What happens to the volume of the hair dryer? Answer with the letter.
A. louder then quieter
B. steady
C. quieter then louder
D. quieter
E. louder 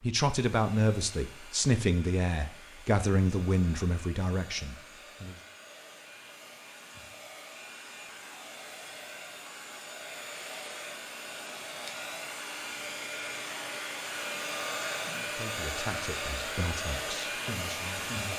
E.